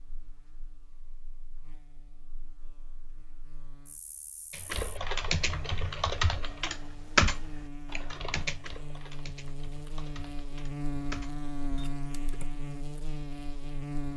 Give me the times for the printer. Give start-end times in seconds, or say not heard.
not heard.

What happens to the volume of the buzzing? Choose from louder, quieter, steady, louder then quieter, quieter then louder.
louder.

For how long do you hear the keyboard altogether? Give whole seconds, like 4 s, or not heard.
8 s.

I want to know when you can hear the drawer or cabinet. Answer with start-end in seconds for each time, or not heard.
not heard.